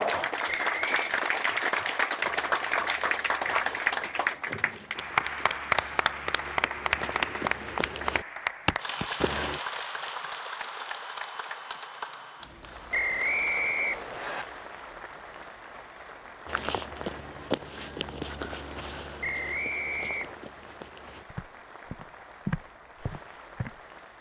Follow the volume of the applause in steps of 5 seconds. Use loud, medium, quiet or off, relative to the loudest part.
loud, loud, medium, quiet, quiet.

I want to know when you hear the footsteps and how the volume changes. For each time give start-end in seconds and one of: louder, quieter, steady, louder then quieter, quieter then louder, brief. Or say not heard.
2.2-9.6 louder
16.4-23.8 quieter then louder.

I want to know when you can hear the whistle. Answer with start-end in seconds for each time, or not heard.
0.5-1.1, 12.9-14.4, 19.2-20.4.